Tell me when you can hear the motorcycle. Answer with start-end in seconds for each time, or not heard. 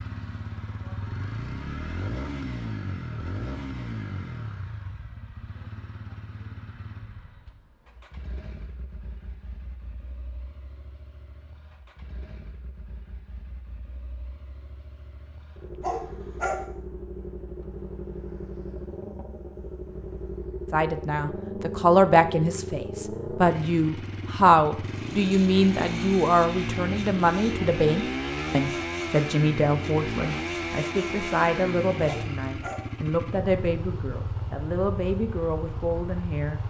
0.0-36.6.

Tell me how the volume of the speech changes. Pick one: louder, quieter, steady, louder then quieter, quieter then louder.
quieter.